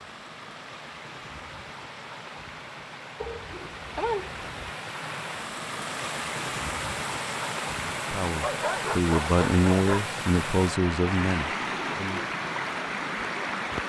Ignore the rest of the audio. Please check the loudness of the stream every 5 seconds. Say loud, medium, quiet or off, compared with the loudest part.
medium, loud, loud.